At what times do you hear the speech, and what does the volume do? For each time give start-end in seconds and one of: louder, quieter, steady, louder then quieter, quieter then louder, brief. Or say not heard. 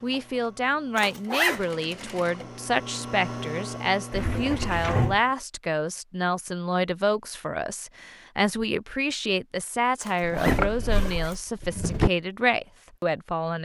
0.0-13.6 steady.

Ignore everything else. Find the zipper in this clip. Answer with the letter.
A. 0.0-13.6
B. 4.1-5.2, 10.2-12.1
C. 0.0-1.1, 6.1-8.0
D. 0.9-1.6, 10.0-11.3
D.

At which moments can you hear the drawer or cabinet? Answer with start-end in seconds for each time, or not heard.
4.1-5.2, 10.2-12.1.